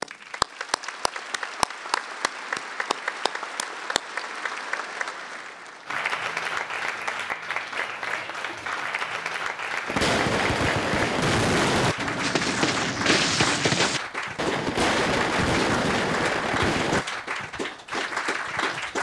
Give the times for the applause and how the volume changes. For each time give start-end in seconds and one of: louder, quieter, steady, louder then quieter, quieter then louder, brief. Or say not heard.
0.0-18.9 steady.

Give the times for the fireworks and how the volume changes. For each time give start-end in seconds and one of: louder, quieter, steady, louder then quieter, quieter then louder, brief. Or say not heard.
9.8-17.1 steady.